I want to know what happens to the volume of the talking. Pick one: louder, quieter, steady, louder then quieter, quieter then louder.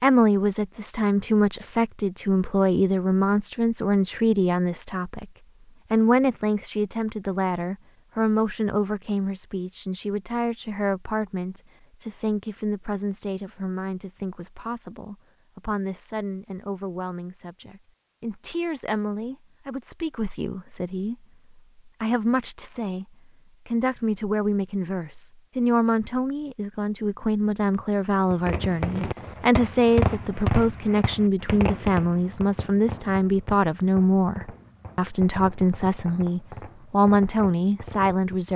quieter then louder.